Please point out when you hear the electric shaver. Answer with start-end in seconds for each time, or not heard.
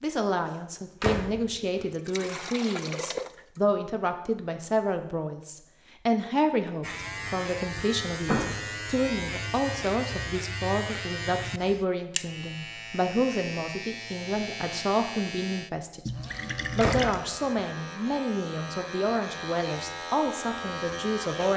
6.8-21.5.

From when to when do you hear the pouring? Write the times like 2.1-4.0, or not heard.
1.9-3.6, 16.1-17.2.